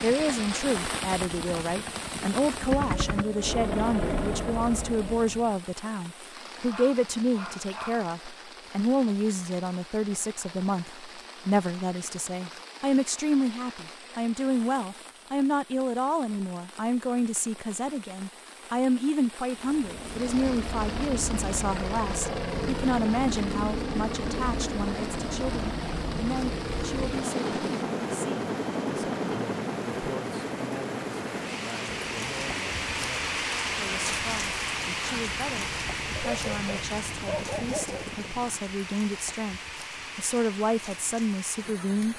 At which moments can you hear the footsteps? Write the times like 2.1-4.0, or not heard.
not heard.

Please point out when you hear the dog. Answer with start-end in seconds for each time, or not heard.
6.7-8.1, 36.1-38.1.